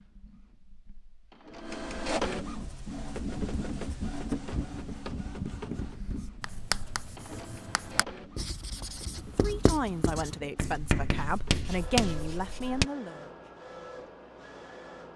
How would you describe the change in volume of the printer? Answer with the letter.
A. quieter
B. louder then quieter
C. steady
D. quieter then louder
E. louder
A.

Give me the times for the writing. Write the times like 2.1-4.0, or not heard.
2.5-12.8.